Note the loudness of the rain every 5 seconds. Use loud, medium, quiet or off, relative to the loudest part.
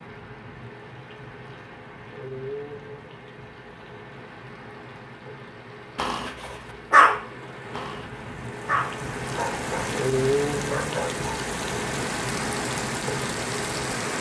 quiet, medium, loud.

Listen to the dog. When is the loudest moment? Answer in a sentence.
The volume of the dog peaks at 7 seconds.